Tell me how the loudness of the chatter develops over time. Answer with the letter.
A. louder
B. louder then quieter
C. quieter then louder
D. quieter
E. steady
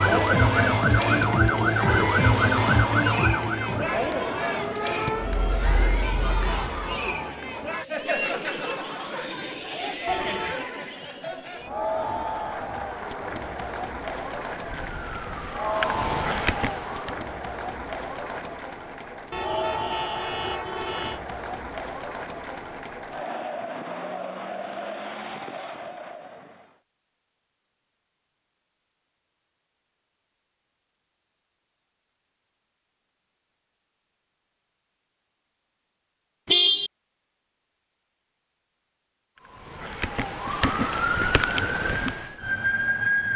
D.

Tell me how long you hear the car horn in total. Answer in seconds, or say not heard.
3 s.